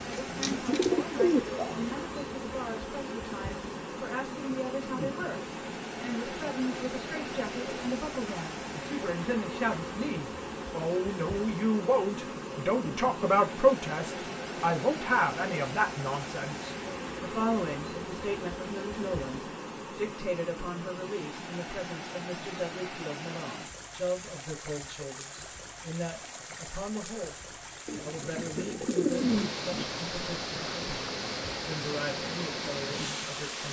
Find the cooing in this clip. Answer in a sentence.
The cooing can be heard from 0.1 to 1.9 s and from 27.9 to 29.9 s.